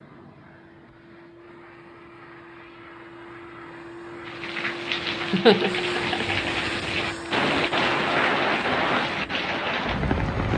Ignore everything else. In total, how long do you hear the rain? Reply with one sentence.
The rain can be heard for 6 seconds in total.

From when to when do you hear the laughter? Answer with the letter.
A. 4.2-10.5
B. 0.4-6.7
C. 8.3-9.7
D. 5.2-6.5
D.